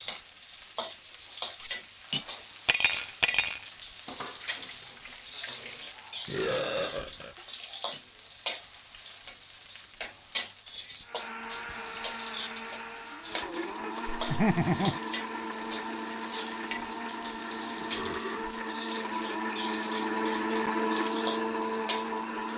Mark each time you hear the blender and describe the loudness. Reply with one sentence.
You can hear the blender from 11.0 to 22.5 s, getting louder.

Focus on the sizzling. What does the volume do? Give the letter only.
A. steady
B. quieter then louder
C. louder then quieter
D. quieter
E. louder
A.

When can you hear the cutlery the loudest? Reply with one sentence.
The loudest moment of the cutlery is at 3 seconds.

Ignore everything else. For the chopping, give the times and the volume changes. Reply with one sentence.
The chopping can't be heard in this clip.